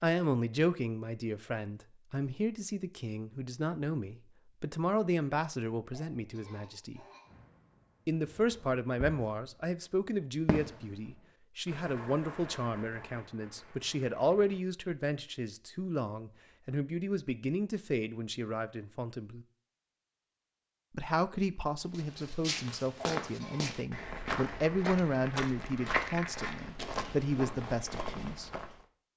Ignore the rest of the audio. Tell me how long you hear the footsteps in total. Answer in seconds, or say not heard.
7 s.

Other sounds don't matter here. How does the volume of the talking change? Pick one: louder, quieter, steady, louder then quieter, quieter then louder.
steady.